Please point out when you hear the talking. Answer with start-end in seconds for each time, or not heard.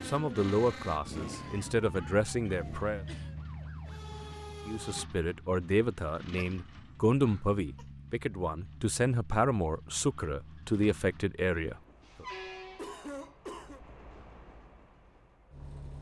0.0-3.0, 4.7-12.2.